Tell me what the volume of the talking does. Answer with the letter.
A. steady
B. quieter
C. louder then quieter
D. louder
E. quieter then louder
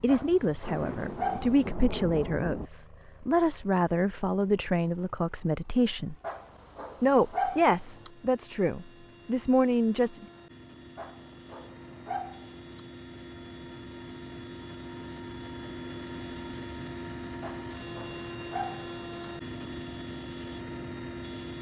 A.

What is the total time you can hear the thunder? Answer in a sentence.
You can hear the thunder for 2 seconds altogether.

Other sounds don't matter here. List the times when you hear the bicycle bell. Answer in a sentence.
The bicycle bell can't be heard in this clip.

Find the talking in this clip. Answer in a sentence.
The talking can be heard from 0.0 to 6.2 s and from 7.0 to 10.2 s.